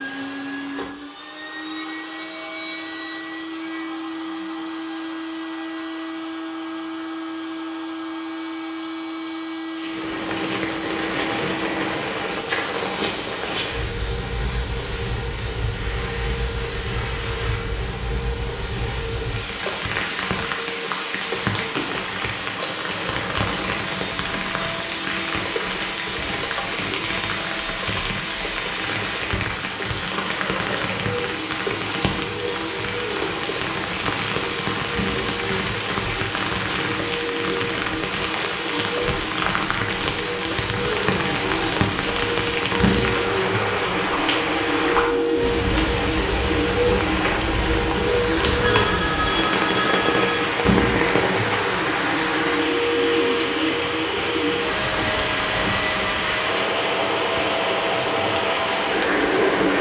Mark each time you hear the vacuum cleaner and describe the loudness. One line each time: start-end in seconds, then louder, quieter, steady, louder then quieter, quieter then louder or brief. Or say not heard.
0.0-59.7 louder.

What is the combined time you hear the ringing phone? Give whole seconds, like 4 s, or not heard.
2 s.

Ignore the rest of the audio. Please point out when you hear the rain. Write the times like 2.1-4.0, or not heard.
9.8-59.7.